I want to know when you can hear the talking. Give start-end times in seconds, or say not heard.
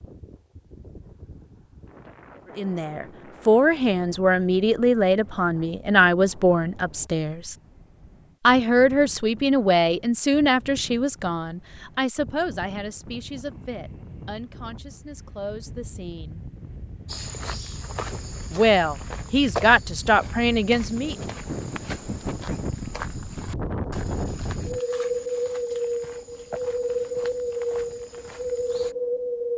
2.5-7.5, 8.4-16.4, 18.5-21.1.